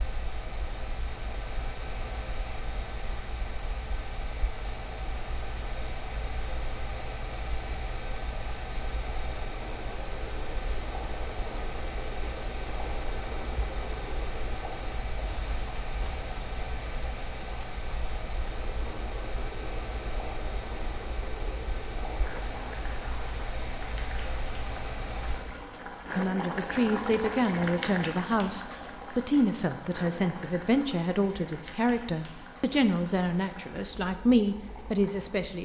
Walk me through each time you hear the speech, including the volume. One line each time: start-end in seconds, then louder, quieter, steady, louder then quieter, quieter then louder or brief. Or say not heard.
26.1-35.6 steady.